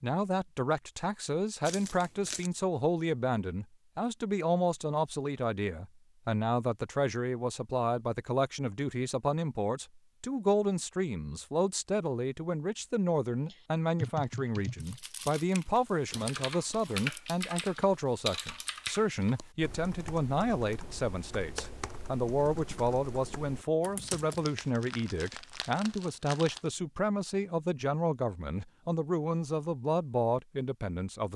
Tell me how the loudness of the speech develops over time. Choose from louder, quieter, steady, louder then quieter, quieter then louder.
steady.